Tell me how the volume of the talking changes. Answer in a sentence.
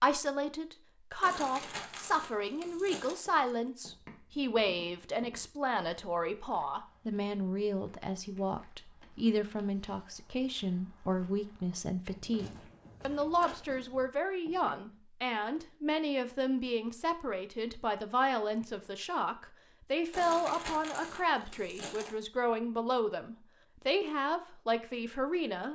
The volume of the talking stays about the same.